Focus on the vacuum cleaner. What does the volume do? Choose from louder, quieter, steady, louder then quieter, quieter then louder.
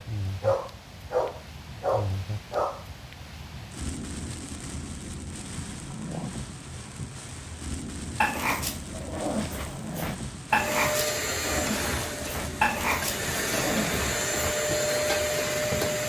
quieter then louder.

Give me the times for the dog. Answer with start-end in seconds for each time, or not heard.
0.4-2.9, 8.2-14.6.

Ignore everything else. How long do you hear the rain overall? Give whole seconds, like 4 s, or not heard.
16 s.